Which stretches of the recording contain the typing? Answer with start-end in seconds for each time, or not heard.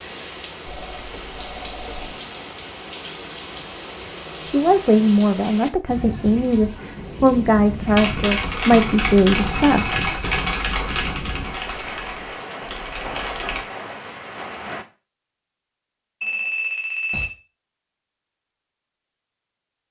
7.8-13.7.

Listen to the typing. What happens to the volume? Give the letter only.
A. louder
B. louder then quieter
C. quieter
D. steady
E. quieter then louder
C.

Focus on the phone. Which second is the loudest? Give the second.
17 s.